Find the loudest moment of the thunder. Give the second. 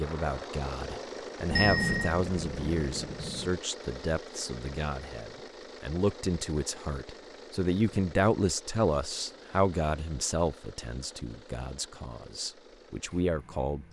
2 s.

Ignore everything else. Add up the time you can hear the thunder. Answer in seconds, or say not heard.
2 s.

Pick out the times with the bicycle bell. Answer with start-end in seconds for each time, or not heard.
1.6-2.1.